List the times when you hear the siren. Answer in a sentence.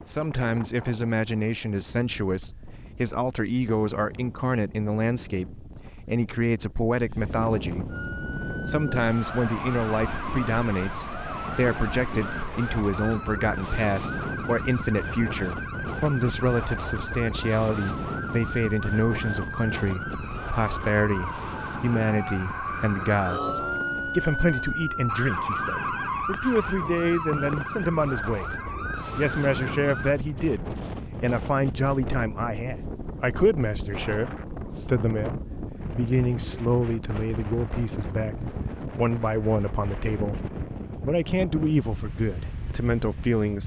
The siren can be heard from 7.9 to 30.1 s.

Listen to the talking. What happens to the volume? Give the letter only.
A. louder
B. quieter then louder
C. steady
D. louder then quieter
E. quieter
C.